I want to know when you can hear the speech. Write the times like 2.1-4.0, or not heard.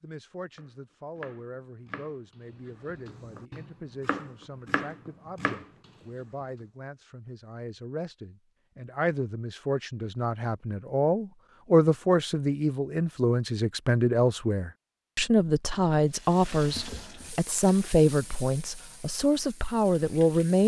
0.0-20.6.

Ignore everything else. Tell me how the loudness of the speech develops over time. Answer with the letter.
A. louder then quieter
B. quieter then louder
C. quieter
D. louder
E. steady
D.